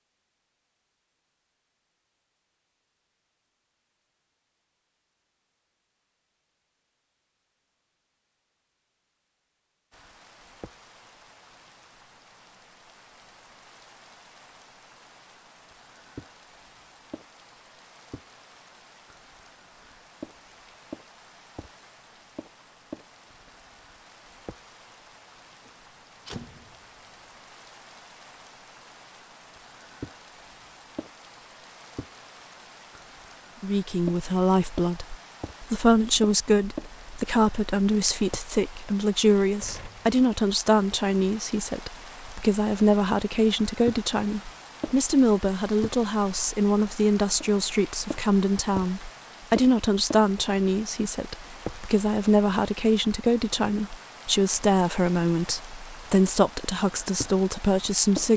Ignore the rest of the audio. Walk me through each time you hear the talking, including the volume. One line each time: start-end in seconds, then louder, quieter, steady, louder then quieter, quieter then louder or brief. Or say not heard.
33.6-58.3 steady.